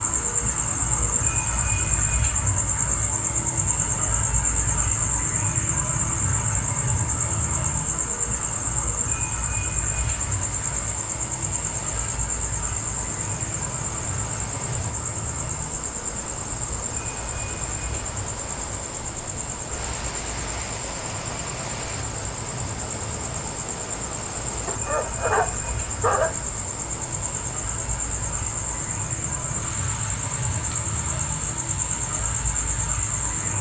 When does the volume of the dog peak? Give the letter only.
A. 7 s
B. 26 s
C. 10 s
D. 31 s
B.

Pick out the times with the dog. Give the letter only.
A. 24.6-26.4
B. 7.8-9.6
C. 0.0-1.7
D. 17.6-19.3
A.